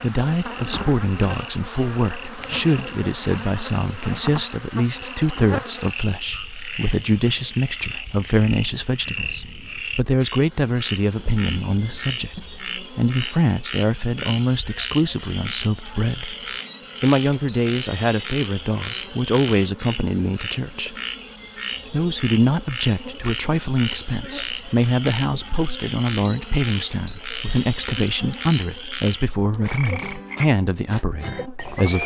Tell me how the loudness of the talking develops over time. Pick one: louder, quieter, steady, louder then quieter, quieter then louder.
steady.